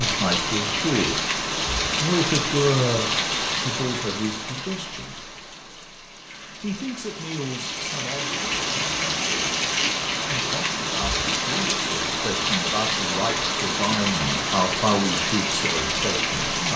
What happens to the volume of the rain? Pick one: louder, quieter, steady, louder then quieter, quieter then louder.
quieter then louder.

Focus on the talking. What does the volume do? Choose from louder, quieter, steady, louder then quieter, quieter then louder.
quieter then louder.